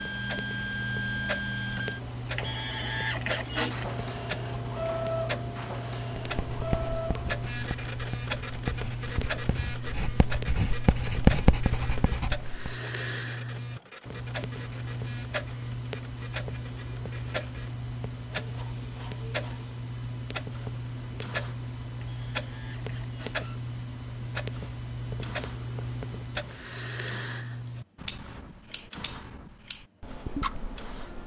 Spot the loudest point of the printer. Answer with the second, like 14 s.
3 s.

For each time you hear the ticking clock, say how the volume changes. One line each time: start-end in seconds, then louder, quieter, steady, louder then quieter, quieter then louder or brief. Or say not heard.
0.0-31.2 steady.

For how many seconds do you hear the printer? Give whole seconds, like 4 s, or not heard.
31 s.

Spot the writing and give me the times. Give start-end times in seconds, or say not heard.
6.2-12.8.